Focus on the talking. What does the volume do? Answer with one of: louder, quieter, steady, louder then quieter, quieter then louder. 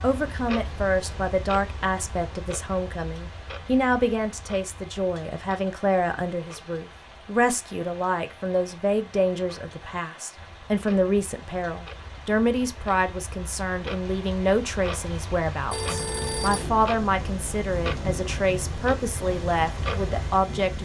steady.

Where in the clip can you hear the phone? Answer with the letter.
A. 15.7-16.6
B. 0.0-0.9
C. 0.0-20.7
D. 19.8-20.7
A.